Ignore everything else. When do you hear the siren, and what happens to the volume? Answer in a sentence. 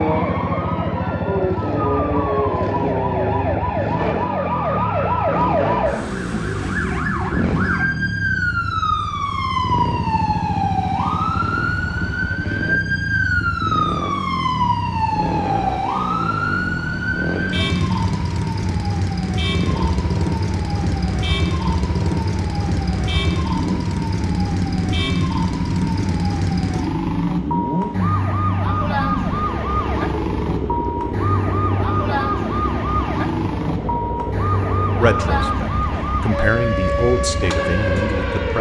The siren can be heard from 0.0 to 38.5 s, at a steady volume.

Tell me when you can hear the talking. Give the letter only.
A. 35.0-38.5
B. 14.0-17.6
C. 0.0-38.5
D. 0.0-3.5
A.